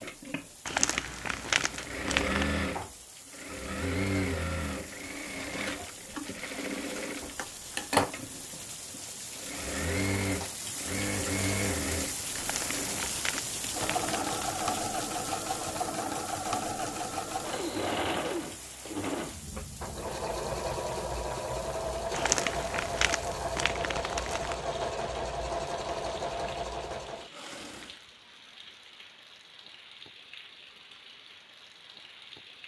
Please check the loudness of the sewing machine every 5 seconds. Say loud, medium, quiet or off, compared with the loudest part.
loud, loud, loud, loud, loud, loud, off.